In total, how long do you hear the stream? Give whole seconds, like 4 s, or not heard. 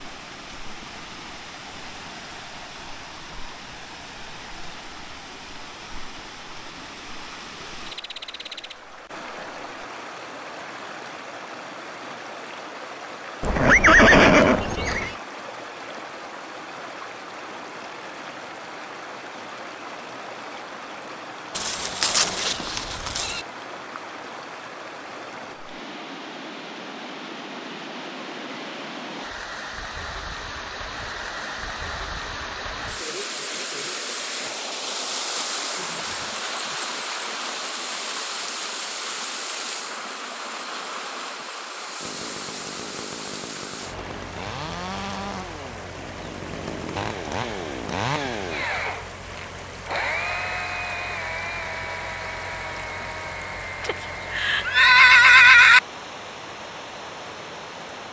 58 s.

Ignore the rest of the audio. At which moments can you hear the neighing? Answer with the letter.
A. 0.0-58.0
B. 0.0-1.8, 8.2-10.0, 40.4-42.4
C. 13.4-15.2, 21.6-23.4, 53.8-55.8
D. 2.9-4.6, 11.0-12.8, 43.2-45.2
C.